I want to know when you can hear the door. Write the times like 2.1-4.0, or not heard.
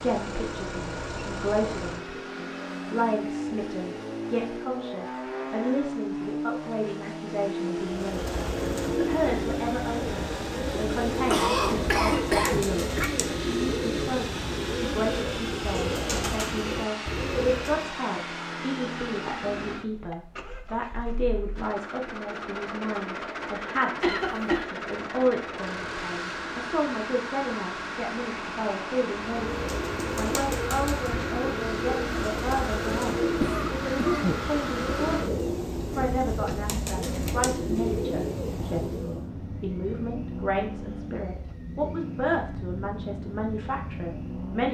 not heard.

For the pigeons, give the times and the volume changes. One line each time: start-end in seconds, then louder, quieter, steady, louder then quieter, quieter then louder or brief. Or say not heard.
7.8-18.0 steady
29.1-39.3 steady.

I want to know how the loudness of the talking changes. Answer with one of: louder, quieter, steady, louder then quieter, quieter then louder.
steady.